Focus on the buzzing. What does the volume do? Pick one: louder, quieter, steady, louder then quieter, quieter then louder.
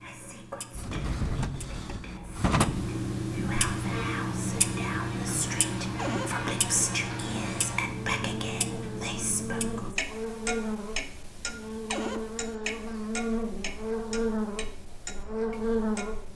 louder.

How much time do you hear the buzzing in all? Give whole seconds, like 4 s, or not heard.
13 s.